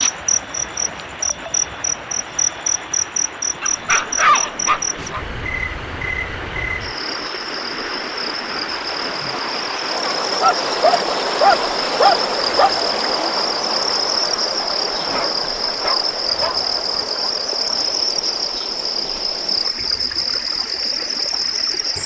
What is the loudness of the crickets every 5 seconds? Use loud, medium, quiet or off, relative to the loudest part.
loud, medium, loud, loud, loud.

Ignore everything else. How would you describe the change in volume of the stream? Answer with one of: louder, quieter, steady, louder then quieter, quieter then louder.
louder then quieter.